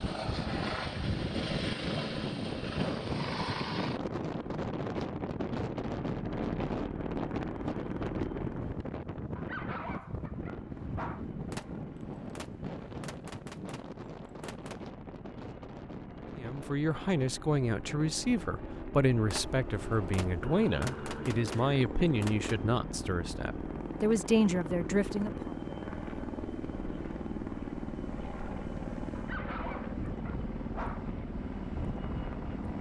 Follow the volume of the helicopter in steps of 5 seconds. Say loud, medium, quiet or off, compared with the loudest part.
loud, loud, medium, medium, loud, loud, loud.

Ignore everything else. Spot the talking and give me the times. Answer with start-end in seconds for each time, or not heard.
16.4-25.5.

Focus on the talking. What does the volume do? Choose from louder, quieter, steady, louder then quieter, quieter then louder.
steady.